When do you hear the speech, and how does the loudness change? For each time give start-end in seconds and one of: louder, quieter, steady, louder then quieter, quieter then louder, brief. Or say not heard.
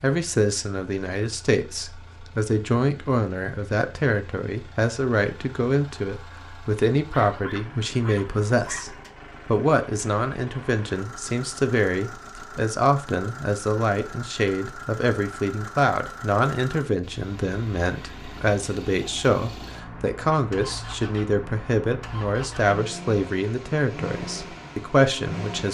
0.0-25.6 steady.